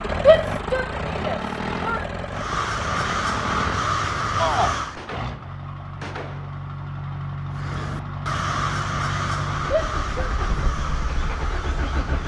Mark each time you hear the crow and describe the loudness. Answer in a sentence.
You can hear the crow briefly from 2.3 to 5.0 s; and from 7.5 to 12.2 s, getting quieter.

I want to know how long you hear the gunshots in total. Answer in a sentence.
The gunshots can be heard for 2 seconds in total.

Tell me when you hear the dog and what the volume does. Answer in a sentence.
The dog can't be heard in this clip.